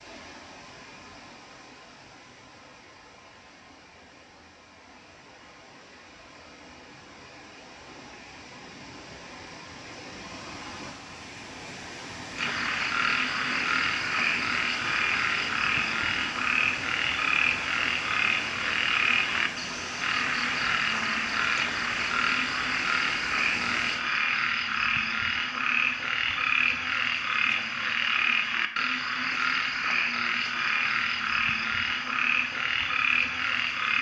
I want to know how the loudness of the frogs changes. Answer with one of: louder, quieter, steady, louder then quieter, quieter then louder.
steady.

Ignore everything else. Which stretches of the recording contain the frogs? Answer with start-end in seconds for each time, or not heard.
12.3-33.9.